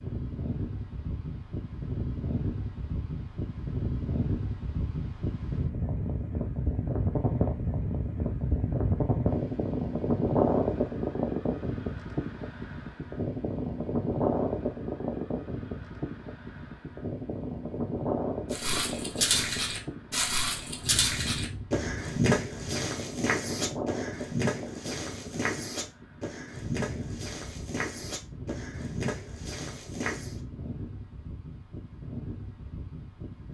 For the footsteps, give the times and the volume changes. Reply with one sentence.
The footsteps can be heard from 18.5 to 30.4 s, getting quieter.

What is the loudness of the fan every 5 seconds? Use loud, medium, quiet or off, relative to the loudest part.
medium, loud, loud, medium, medium, quiet, quiet.